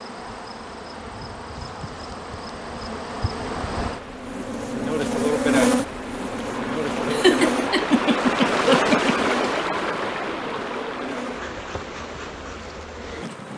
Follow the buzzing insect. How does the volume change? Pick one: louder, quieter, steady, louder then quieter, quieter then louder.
louder then quieter.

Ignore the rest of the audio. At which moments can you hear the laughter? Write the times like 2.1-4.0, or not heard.
7.0-9.2.